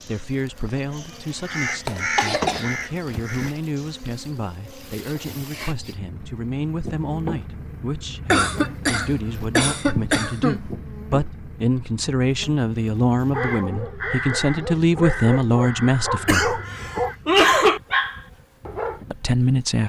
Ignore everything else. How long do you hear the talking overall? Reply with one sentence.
You can hear the talking for 17 seconds altogether.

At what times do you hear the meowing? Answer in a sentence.
The meowing can't be heard in this clip.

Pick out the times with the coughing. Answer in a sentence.
You can hear the coughing from 1.9 to 2.7 s, from 8.3 to 10.7 s and from 16.2 to 17.8 s.